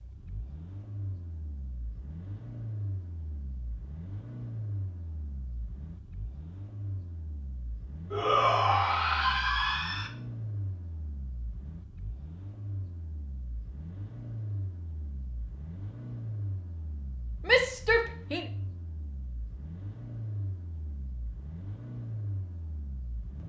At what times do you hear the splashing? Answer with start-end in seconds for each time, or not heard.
not heard.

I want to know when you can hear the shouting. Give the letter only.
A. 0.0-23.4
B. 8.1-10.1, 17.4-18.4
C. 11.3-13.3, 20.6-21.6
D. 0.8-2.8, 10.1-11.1
B.